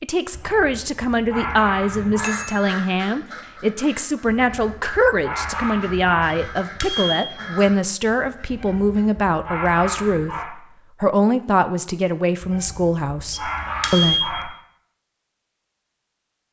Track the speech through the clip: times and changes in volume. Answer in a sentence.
The speech can be heard from 0.0 to 14.6 s, at a steady volume.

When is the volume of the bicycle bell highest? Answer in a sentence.
The loudest moment of the bicycle bell is at 14 seconds.